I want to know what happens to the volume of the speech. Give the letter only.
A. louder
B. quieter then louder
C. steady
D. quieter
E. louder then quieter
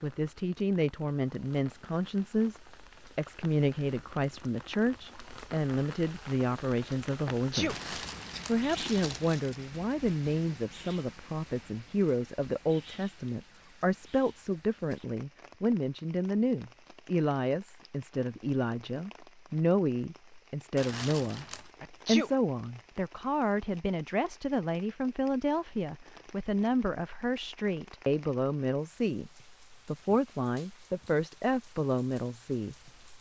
C.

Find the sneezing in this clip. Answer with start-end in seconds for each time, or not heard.
7.3-7.8, 21.8-22.3.